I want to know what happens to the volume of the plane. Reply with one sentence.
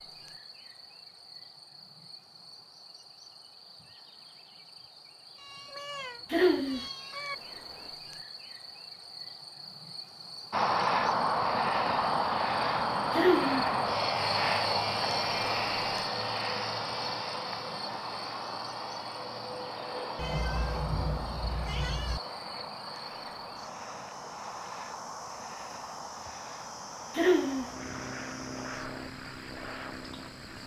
The volume of the plane goes down.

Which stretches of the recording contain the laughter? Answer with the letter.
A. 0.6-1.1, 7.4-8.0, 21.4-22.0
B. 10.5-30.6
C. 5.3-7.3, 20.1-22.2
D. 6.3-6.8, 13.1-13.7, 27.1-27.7
D.